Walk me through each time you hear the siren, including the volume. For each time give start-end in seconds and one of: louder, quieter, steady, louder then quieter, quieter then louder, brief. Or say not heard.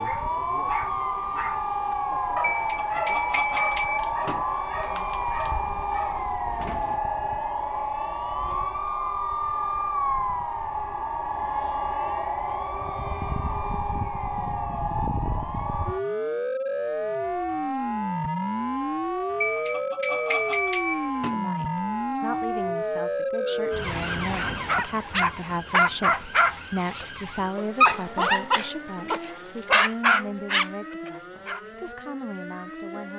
0.0-33.1 quieter.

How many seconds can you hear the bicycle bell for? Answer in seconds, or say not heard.
4 s.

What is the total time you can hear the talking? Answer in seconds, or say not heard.
12 s.